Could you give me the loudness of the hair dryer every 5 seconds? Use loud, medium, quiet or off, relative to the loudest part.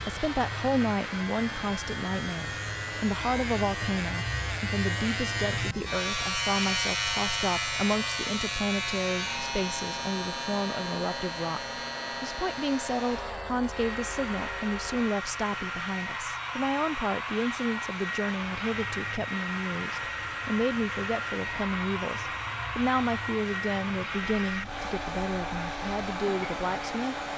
medium, medium, medium, loud, loud, loud.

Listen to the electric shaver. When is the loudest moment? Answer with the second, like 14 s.
7 s.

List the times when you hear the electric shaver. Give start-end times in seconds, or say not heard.
0.0-27.3.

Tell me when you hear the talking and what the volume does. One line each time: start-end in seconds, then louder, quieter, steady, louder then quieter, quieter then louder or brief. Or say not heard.
0.1-11.6 steady
12.2-27.1 steady.